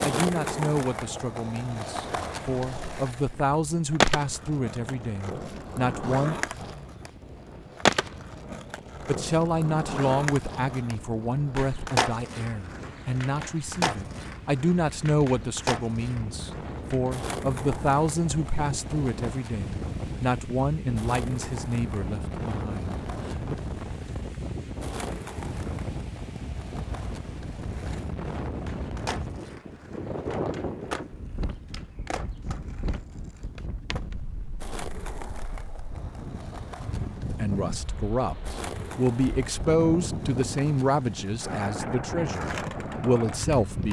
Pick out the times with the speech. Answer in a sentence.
You can hear the speech from 0.0 to 6.4 s, from 9.1 to 23.6 s and from 37.3 to 43.8 s.